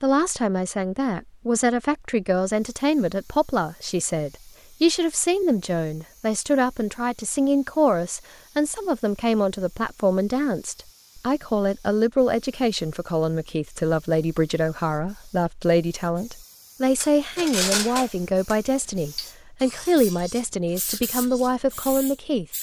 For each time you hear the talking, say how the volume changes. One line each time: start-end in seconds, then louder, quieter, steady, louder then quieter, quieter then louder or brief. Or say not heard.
0.0-22.4 steady.